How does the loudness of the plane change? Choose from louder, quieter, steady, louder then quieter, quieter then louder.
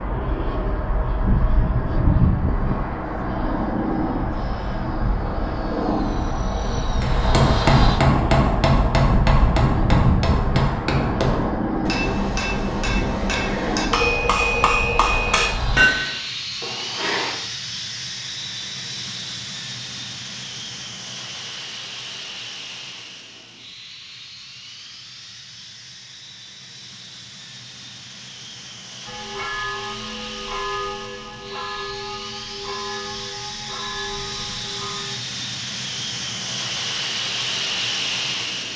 quieter then louder.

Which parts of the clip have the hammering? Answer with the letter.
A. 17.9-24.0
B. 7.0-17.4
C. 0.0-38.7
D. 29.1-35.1
B.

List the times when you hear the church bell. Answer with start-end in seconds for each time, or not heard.
29.1-35.1.